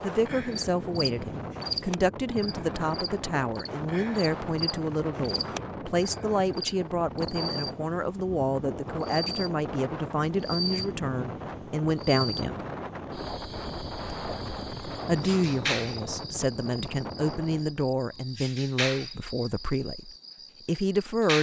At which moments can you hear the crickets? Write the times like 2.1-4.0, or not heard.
0.0-21.3.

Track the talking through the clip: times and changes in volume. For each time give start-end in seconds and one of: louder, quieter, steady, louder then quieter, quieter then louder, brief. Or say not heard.
0.0-12.6 steady
15.1-21.3 steady.